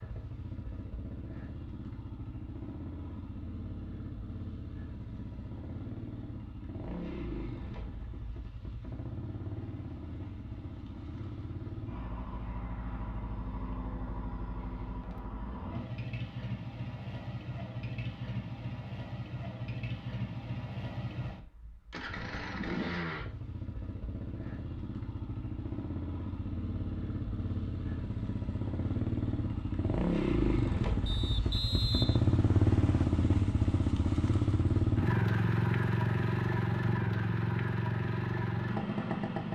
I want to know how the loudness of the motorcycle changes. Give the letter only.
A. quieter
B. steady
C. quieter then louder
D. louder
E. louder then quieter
D.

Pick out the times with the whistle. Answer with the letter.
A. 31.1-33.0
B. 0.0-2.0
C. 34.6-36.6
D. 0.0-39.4
A.